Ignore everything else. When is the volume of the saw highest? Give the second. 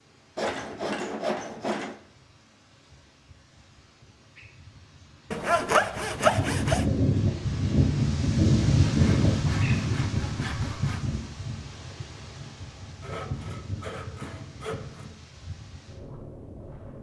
6 s.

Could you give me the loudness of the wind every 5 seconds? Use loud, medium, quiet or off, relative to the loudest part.
quiet, loud, medium, quiet.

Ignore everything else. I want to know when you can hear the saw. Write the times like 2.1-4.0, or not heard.
0.3-2.0, 5.3-6.8, 8.8-11.1, 13.0-15.2.